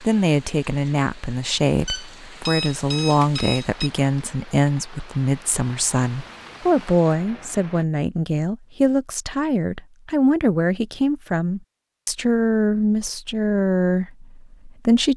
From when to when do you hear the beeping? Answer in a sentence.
You can hear the beeping from 1.9 to 3.9 s.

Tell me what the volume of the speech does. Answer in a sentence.
The volume of the speech stays about the same.